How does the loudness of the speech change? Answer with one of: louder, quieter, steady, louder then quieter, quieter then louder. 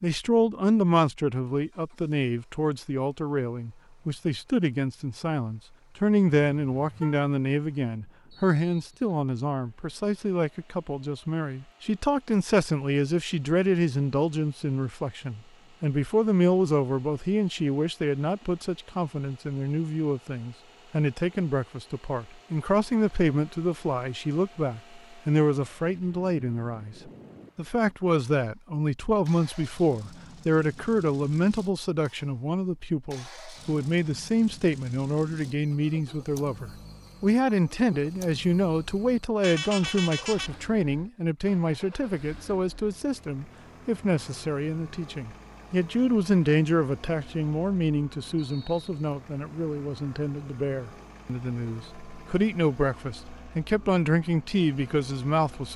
steady.